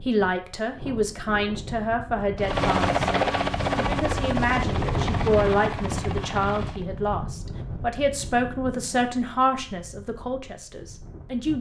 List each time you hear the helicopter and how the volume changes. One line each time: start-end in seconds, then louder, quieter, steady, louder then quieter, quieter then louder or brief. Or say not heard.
2.4-6.8 quieter.